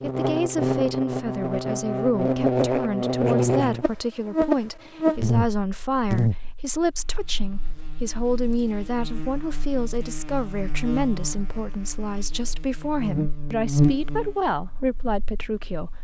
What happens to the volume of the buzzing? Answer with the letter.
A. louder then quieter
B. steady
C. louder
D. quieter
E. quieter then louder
E.